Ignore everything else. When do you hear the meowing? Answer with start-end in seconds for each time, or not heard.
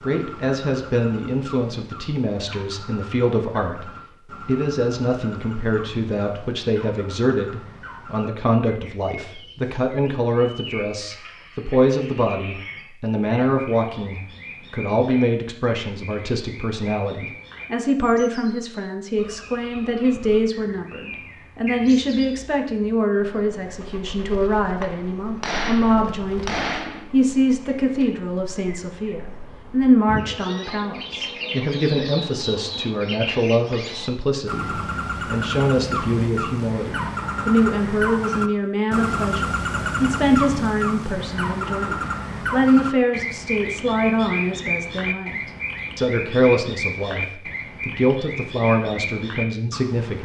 not heard.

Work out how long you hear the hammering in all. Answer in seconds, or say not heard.
2 s.